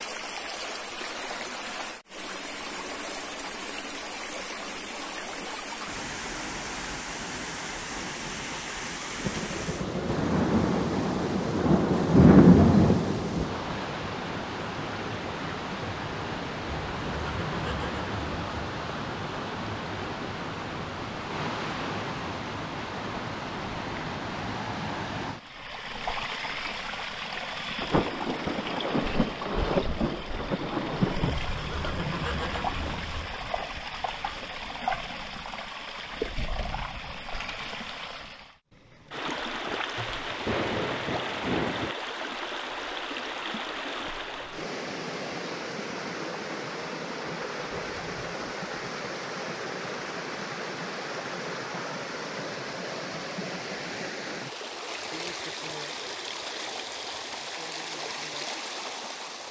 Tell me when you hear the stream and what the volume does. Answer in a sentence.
The stream can be heard from 0.0 to 59.4 s, at a steady volume.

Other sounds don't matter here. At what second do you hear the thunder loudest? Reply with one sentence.
The volume of the thunder peaks at 12 seconds.